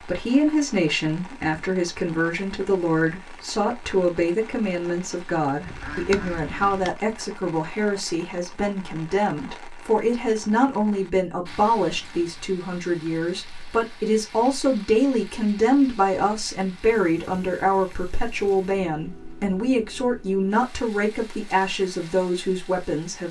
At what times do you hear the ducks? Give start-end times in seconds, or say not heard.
5.7-6.9.